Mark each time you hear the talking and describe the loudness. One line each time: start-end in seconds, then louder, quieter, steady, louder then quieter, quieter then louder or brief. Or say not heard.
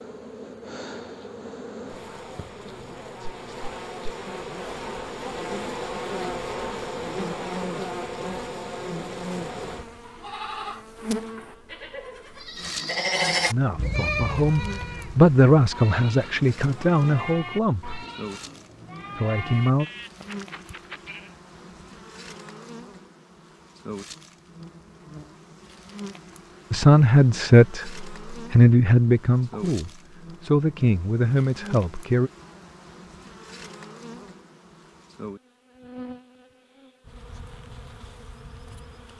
13.5-18.1 louder then quieter
19.1-19.9 brief
26.7-32.3 quieter.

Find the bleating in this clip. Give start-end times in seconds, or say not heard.
9.9-21.4.